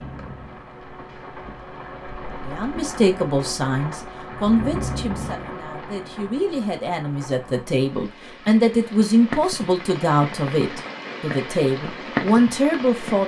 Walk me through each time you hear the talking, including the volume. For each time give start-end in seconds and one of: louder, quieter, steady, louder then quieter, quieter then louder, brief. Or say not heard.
2.5-13.2 quieter then louder.